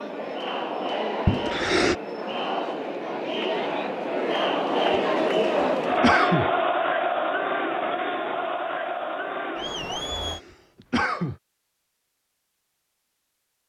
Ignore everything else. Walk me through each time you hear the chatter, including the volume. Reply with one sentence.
You can hear the chatter from 0.0 to 10.4 s, getting louder then quieter.